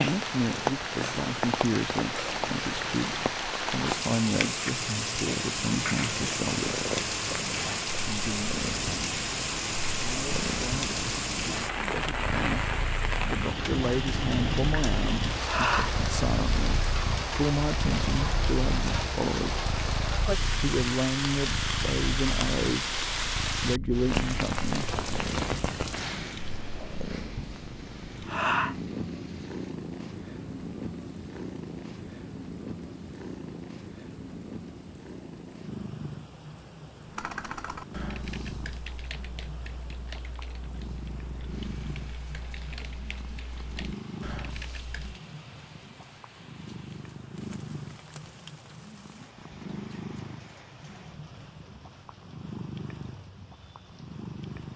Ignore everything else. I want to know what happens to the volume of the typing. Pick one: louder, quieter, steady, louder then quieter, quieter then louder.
quieter then louder.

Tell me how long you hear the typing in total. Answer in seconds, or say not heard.
8 s.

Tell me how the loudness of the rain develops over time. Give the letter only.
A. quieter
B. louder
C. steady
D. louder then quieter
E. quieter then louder
A.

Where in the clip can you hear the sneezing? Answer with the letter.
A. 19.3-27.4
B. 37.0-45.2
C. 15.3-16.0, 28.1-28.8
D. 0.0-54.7
C.